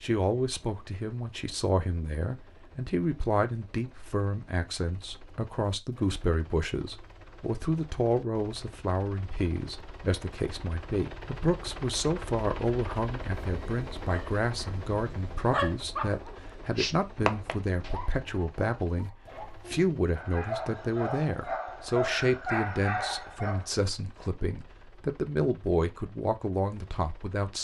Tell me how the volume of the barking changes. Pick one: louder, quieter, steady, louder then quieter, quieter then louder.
quieter then louder.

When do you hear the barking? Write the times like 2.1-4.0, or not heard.
14.1-23.7.